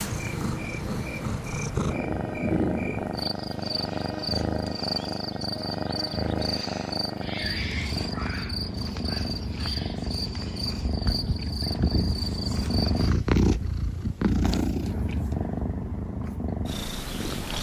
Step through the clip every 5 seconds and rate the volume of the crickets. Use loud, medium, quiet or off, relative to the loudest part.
loud, loud, loud, off.